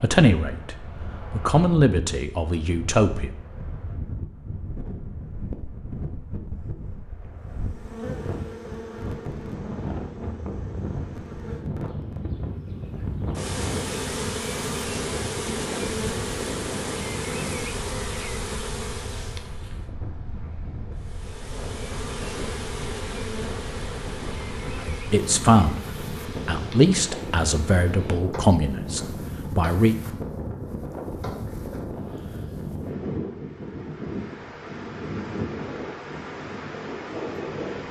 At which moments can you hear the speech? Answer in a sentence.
You can hear the speech from 0.0 to 3.3 s and from 24.8 to 29.9 s.